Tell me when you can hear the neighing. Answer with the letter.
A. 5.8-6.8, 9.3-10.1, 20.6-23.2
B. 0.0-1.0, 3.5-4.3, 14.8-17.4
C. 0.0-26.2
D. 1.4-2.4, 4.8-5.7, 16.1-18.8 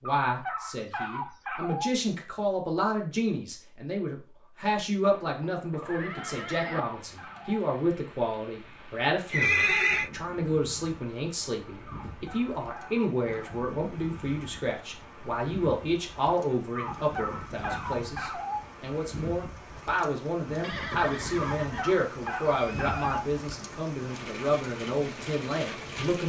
A.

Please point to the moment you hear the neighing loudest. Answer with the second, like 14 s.
10 s.